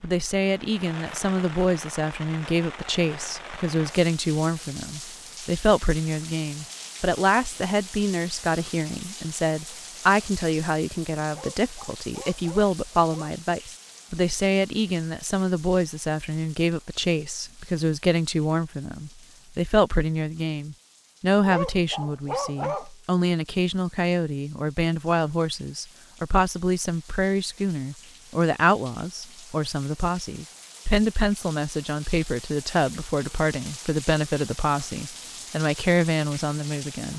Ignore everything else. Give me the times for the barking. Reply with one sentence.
You can hear the barking from 11.2 to 13.3 s and from 21.4 to 22.9 s.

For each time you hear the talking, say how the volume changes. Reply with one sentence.
The talking can be heard from 0.0 to 37.1 s, at a steady volume.